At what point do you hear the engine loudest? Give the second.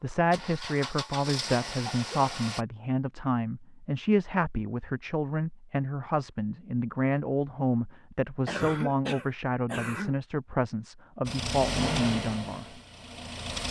12 s.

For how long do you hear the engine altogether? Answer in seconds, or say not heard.
5 s.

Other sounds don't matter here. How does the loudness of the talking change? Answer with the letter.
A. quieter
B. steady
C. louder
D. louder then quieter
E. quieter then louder
B.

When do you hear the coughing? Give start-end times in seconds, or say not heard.
1.6-2.5, 8.4-10.2.